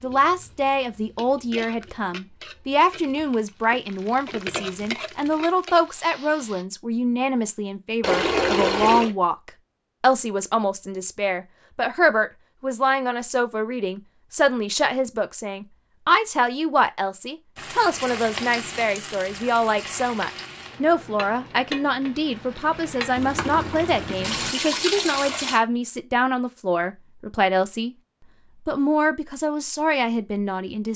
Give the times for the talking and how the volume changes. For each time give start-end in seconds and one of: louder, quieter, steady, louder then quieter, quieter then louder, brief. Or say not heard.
0.0-27.9 steady
28.6-30.9 brief.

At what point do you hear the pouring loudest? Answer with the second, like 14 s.
9 s.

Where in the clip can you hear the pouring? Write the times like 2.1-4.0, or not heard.
8.0-9.1, 23.1-25.6.